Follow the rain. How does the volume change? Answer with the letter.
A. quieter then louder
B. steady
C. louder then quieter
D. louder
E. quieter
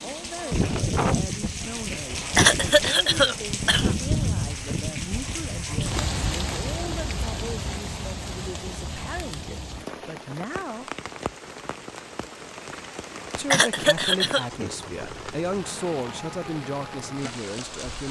E.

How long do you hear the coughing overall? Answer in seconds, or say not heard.
3 s.